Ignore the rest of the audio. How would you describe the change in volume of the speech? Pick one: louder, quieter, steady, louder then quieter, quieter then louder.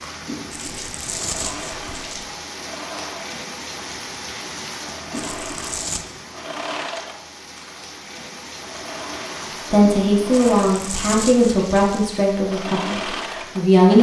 quieter.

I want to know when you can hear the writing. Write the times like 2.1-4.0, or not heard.
not heard.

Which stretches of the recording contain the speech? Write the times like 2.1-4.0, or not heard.
9.7-13.9.